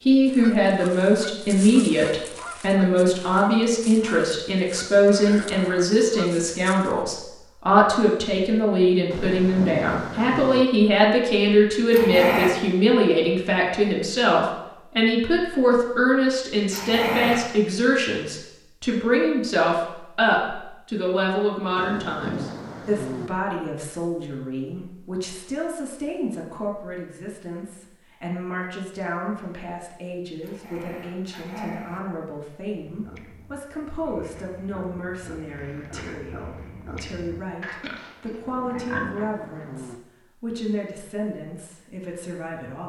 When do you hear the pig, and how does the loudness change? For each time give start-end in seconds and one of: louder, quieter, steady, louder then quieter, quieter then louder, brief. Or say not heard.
32.9-39.3 louder.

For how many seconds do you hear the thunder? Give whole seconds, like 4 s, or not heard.
5 s.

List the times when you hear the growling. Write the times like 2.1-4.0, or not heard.
11.9-12.6, 16.7-17.4, 30.4-32.0.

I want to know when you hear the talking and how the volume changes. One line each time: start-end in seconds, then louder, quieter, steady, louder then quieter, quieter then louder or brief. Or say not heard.
0.1-42.8 quieter.